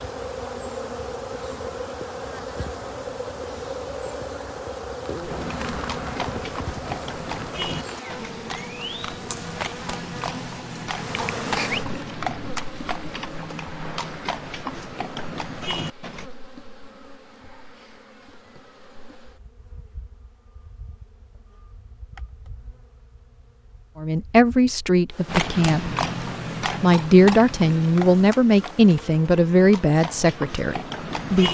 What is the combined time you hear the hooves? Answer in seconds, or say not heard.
17 s.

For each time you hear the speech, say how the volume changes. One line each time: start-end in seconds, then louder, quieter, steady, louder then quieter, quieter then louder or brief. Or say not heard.
23.9-25.9 brief
26.8-31.4 quieter.